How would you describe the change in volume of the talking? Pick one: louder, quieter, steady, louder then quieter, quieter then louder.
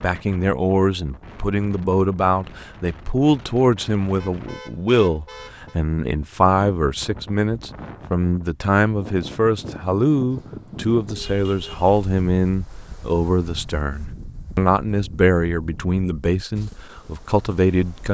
steady.